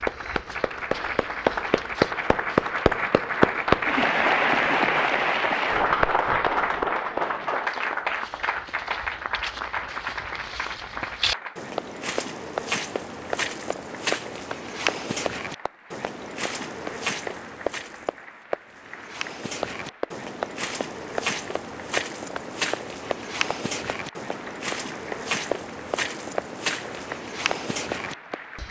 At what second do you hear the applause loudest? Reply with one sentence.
The loudest moment of the applause is at 4 seconds.